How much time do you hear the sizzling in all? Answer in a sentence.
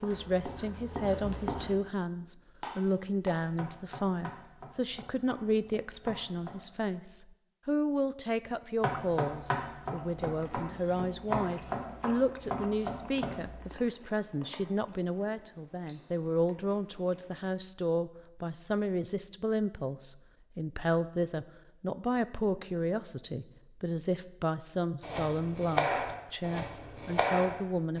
The sizzling can't be heard in this clip.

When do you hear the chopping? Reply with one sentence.
You can hear the chopping from 0.0 to 6.5 s, from 8.8 to 13.8 s and from 25.0 to 27.9 s.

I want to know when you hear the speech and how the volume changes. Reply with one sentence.
You can hear the speech from 0.0 to 27.9 s, at a steady volume.